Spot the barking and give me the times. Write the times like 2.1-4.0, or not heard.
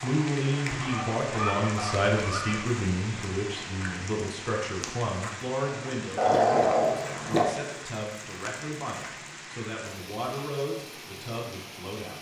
0.7-2.6, 6.2-7.5.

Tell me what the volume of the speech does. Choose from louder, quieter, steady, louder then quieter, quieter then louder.
quieter.